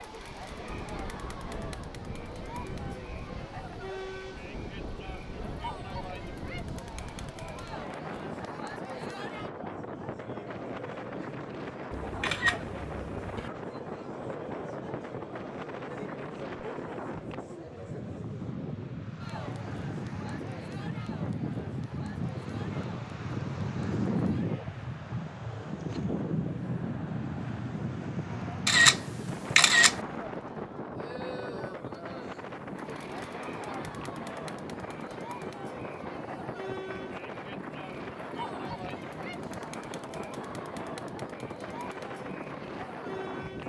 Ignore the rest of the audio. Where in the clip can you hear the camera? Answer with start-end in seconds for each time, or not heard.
11.9-13.5, 28.6-29.9.